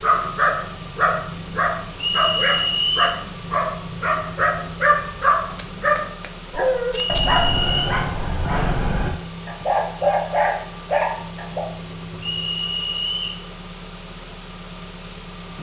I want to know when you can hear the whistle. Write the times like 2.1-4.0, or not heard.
2.0-3.2, 7.2-7.9, 12.2-13.4.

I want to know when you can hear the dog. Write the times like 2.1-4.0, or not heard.
0.0-11.6.